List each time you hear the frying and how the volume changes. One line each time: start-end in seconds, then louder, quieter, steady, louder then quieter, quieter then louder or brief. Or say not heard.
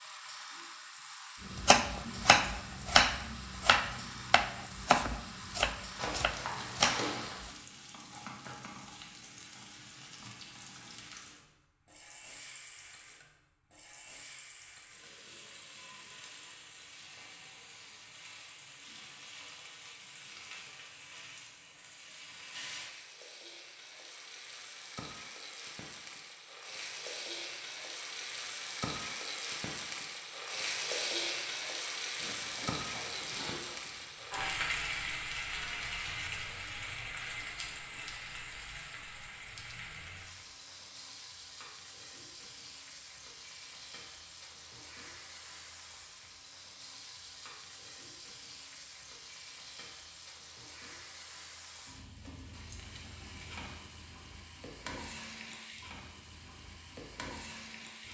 0.0-58.0 louder then quieter.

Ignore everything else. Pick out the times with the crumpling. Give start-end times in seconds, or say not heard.
6.0-7.3, 32.2-34.2.